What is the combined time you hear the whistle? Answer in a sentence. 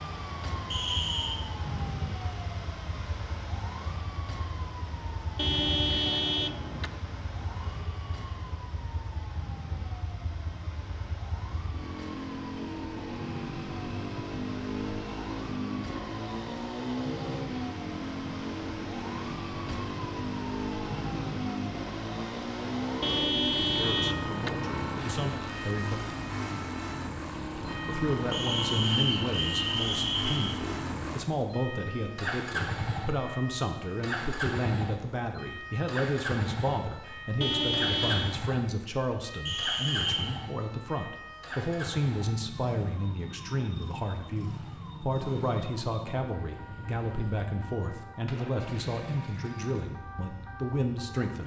The whistle can be heard for 4 seconds in total.